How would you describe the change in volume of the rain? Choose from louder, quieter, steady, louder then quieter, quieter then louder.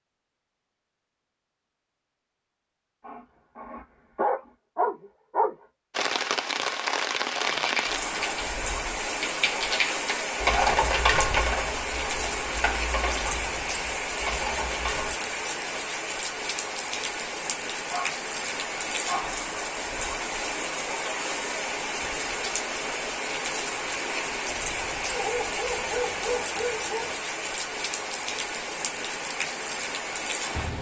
steady.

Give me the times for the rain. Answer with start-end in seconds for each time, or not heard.
5.9-30.7.